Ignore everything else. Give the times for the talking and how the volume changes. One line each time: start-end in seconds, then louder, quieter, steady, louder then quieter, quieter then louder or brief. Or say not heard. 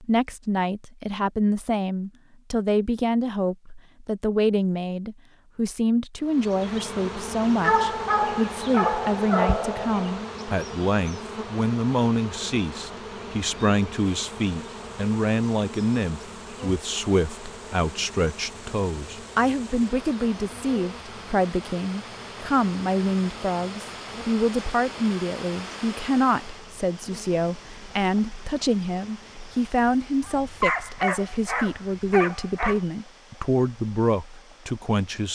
0.0-35.3 steady.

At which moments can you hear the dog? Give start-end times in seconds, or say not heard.
7.6-10.2, 30.2-32.8.